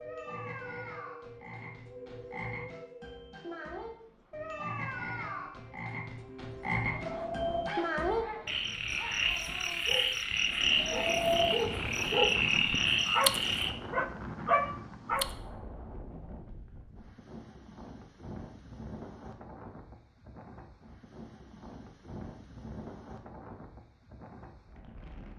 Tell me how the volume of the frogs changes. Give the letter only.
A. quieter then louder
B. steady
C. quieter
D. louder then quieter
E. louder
E.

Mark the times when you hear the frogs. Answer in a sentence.
The frogs can be heard from 0.0 to 13.7 s.